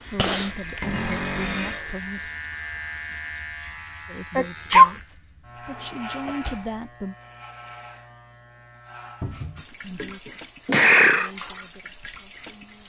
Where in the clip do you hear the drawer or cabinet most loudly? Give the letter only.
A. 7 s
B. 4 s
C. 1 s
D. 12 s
C.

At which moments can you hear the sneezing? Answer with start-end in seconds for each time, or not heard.
0.1-1.8, 4.3-4.9, 9.4-11.3.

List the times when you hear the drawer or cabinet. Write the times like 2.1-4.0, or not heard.
0.8-1.9, 5.7-6.7, 9.2-9.7.